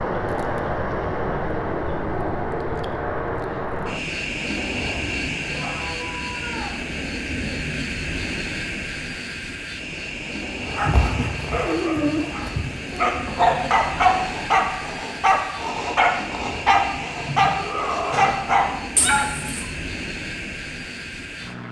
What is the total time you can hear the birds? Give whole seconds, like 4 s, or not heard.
not heard.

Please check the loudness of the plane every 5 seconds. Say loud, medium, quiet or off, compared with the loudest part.
loud, loud, medium, medium, medium.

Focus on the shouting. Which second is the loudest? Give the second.
18 s.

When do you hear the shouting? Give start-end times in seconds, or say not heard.
5.5-6.8, 17.6-18.2.